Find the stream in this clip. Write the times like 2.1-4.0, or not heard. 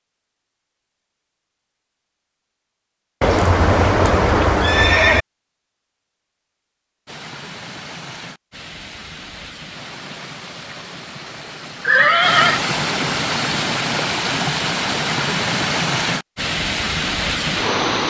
7.0-18.0.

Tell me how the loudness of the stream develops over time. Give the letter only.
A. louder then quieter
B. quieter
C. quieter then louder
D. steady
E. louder
E.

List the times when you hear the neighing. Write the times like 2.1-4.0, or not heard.
3.2-5.2, 11.8-12.6.